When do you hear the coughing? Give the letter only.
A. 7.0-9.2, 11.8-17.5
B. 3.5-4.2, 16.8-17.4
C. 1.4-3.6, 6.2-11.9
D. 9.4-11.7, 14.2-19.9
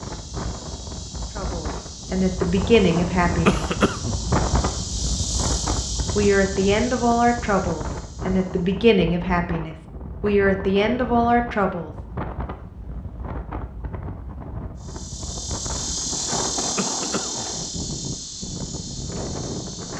B.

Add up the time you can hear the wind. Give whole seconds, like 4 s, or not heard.
20 s.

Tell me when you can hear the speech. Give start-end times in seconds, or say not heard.
1.4-3.6, 6.2-11.9.